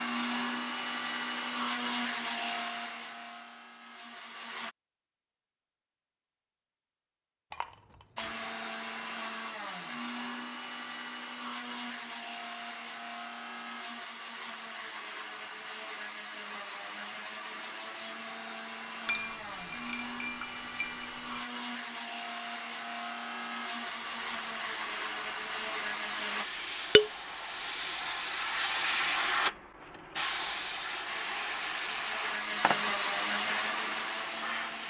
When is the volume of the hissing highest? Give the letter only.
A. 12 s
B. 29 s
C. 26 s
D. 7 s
B.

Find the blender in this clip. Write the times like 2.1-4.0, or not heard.
0.0-4.8, 8.2-26.4, 31.1-34.8.